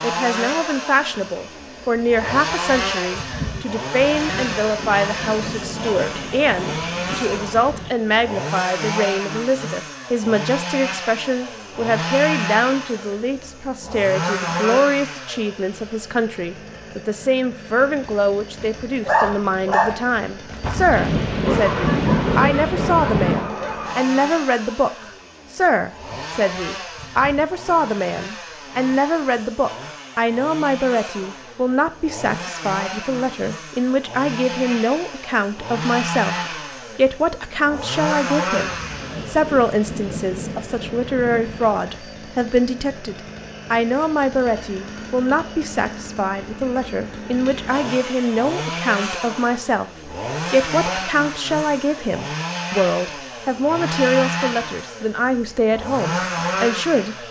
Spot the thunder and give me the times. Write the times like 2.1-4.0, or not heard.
4.0-7.9, 20.6-23.5, 38.6-41.8.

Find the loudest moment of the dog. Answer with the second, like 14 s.
19 s.